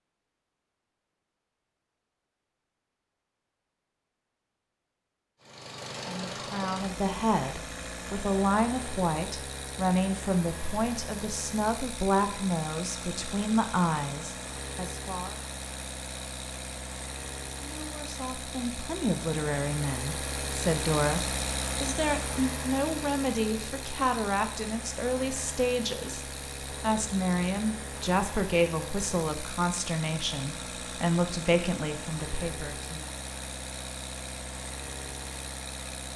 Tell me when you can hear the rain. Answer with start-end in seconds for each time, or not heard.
not heard.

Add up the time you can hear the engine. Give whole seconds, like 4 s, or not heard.
31 s.